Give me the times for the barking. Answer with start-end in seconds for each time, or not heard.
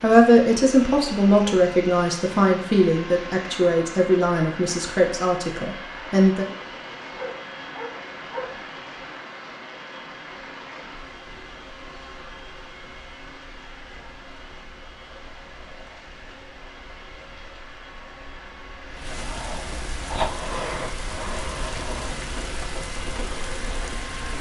7.2-8.6.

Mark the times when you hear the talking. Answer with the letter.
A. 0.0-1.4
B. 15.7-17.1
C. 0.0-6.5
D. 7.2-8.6
C.